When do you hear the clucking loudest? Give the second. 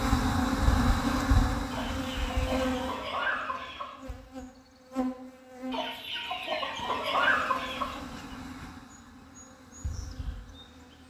7 s.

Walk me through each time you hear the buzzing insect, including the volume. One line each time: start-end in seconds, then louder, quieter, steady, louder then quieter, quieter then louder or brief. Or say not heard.
0.0-11.0 quieter.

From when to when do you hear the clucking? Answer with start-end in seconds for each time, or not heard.
1.7-4.0, 5.7-8.0.